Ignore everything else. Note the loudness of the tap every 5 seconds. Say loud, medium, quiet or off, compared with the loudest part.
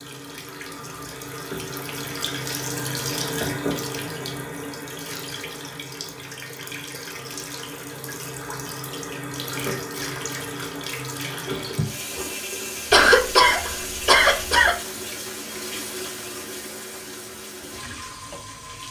loud, loud, loud, medium.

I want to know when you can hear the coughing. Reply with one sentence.
The coughing can be heard from 12.9 to 14.8 s.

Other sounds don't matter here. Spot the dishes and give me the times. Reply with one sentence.
You can't hear the dishes here.